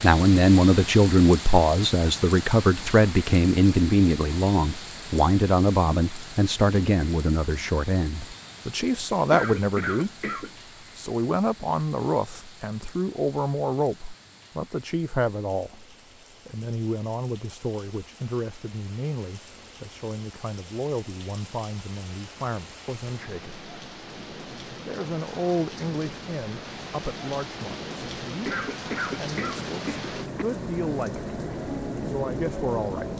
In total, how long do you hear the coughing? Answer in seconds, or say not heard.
3 s.